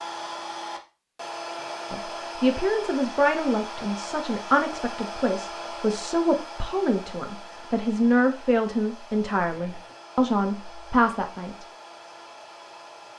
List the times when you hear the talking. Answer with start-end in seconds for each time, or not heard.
1.9-11.7.